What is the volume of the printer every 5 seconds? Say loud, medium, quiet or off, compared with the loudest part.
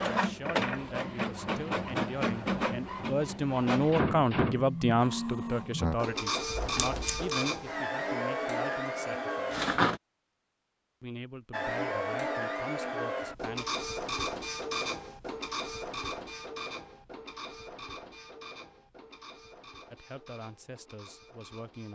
loud, loud, loud, medium, quiet.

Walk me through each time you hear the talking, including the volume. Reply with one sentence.
The talking can be heard from 0.0 to 9.7 s, getting louder then quieter; briefly from 11.0 to 13.7 s; and briefly from 19.9 to 21.9 s.